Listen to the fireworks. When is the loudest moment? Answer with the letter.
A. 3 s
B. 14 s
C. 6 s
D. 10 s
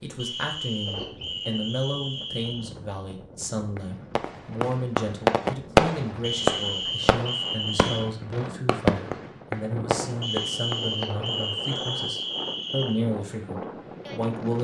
C.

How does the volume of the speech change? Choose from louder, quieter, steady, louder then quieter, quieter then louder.
steady.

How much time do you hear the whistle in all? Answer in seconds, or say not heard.
7 s.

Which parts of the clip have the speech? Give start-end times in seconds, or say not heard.
0.0-14.5.